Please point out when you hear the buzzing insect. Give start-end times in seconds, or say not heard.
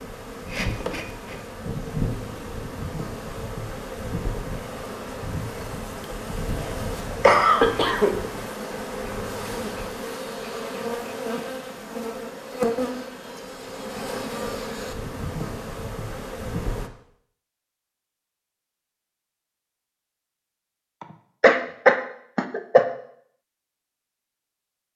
0.0-16.9.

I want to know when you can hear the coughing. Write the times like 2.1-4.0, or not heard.
6.5-8.2, 21.0-22.9.